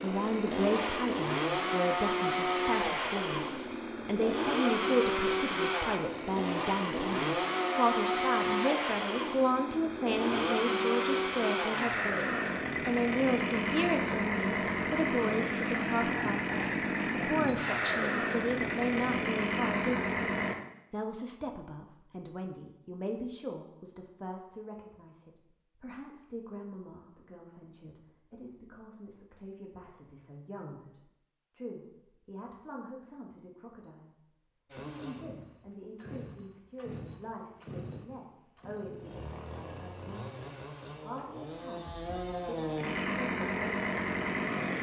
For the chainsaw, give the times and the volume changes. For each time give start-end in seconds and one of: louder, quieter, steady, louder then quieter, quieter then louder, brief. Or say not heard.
0.0-20.6 steady
34.7-44.7 louder.